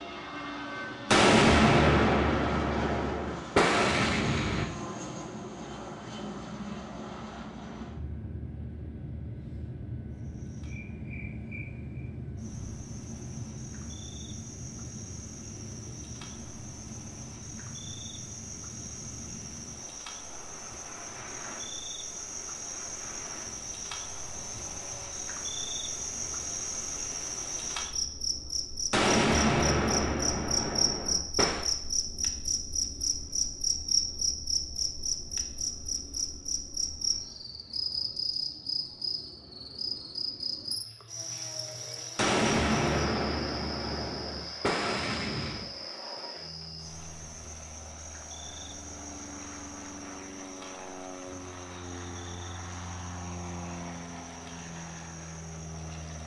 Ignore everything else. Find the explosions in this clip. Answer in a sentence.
You can hear the explosions from 1.1 to 4.7 s, from 28.9 to 31.6 s and from 42.1 to 45.7 s.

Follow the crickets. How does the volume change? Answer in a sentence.
The loudness of the crickets goes up, then down.